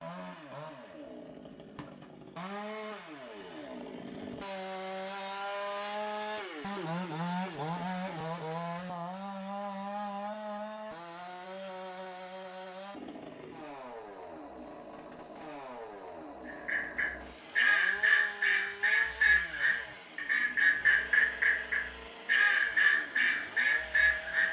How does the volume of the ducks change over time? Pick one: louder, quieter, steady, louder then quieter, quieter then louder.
steady.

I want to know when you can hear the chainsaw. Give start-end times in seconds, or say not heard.
0.0-24.4.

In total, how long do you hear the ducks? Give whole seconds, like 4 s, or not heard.
8 s.